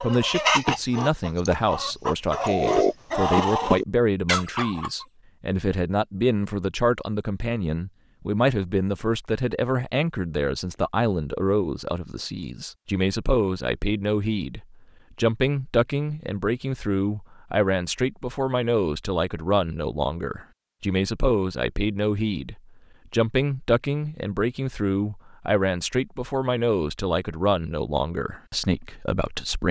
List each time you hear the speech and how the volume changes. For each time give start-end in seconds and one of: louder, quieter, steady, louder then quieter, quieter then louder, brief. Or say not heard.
0.0-29.6 steady.